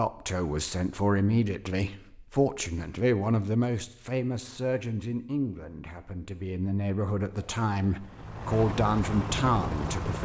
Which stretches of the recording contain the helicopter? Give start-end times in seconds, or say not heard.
7.2-10.2.